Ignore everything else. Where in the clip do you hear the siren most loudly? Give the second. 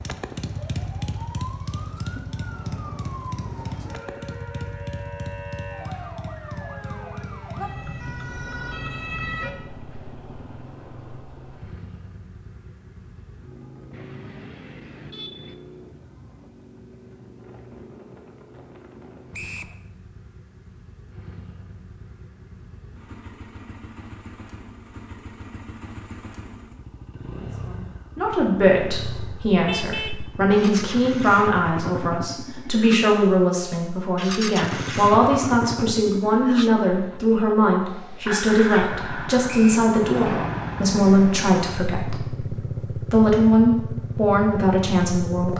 9 s.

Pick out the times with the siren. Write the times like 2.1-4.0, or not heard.
0.0-9.6.